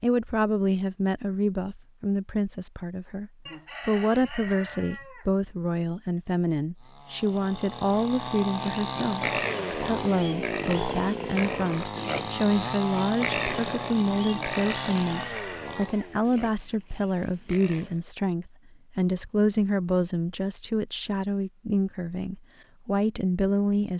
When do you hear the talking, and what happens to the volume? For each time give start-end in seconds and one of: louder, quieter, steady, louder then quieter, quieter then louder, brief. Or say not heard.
0.0-23.9 steady.